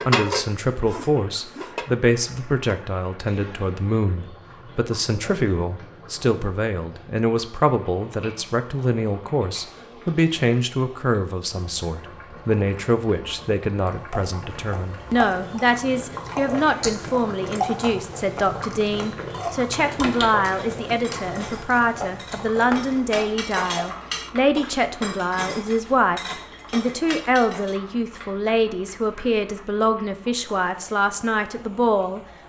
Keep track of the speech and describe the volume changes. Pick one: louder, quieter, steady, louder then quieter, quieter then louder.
steady.